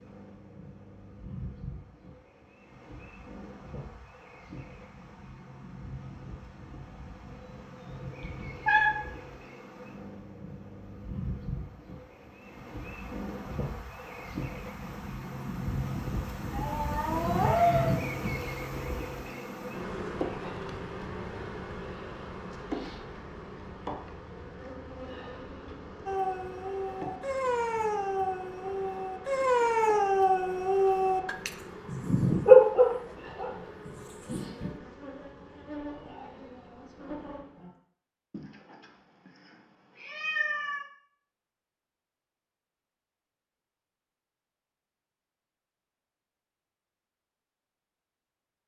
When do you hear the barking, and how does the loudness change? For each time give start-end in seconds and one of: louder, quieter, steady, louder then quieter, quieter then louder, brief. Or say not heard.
26.1-34.7 louder then quieter.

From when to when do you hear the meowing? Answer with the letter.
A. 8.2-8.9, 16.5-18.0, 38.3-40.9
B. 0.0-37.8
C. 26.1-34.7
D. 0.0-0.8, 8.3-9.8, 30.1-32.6
A.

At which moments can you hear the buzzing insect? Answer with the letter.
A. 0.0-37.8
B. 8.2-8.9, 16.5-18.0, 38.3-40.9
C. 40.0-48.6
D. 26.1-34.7
A.